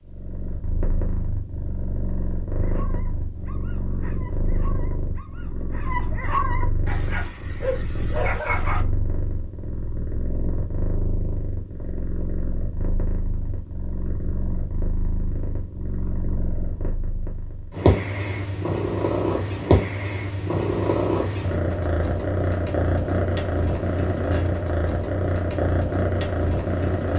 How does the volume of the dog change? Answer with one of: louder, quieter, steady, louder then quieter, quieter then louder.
louder.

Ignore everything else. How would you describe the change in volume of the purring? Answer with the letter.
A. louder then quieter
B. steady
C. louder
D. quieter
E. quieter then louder
C.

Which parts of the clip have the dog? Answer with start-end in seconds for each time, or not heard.
2.5-8.8.